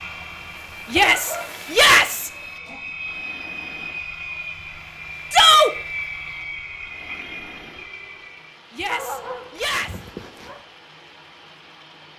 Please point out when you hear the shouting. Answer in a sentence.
The shouting can be heard from 0.9 to 2.3 s, from 5.3 to 5.7 s and from 8.7 to 10.0 s.